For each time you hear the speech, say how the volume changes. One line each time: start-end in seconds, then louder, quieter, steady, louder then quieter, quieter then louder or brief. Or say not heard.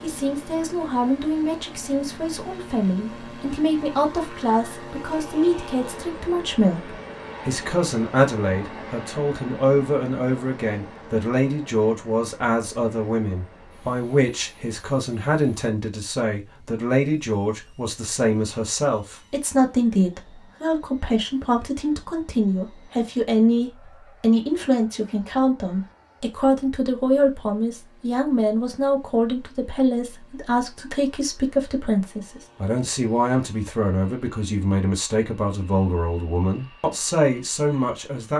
0.0-38.3 steady.